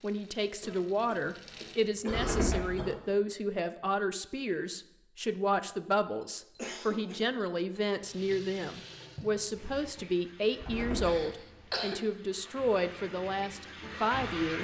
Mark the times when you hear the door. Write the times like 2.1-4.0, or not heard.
2.0-2.9, 10.6-11.2.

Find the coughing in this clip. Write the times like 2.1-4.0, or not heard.
0.6-3.1, 6.2-7.8, 11.1-12.0.